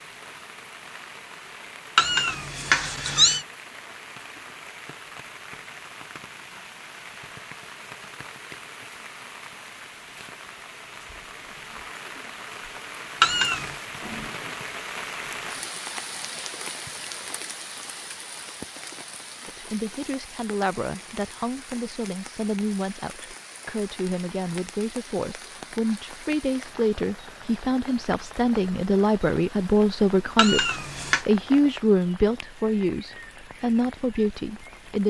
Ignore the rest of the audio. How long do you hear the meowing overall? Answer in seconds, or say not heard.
3 s.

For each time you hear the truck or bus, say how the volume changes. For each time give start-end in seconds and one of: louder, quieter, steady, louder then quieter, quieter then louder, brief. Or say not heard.
not heard.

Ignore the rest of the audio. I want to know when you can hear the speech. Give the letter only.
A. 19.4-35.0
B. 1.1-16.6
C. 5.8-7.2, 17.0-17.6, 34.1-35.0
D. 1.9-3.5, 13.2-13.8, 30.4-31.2
A.